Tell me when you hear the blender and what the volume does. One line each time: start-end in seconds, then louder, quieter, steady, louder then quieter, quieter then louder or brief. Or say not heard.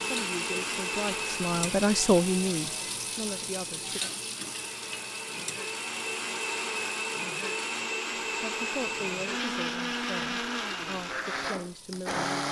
0.0-12.4 quieter then louder.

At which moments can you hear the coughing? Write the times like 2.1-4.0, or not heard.
not heard.